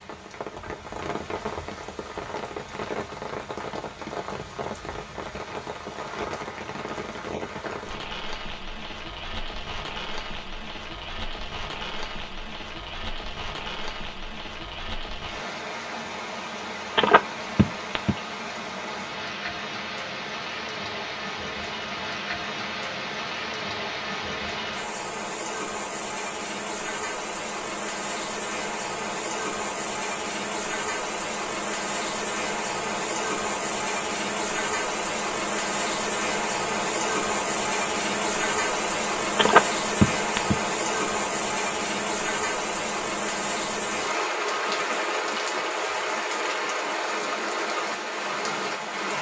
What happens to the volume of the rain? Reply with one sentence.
The loudness of the rain goes up.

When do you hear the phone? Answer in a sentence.
You can hear the phone from 16.9 to 18.1 s and from 39.4 to 40.5 s.